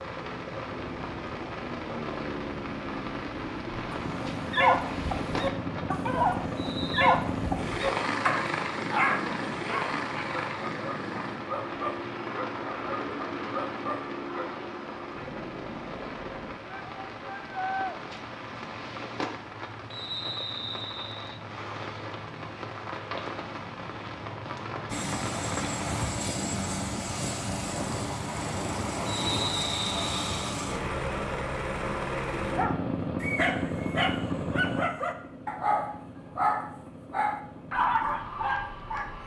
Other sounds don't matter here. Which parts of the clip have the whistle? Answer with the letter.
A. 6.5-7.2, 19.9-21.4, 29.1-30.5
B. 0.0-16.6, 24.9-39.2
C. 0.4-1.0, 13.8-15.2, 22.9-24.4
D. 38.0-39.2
A.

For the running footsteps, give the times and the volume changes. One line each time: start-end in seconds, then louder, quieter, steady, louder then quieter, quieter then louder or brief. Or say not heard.
not heard.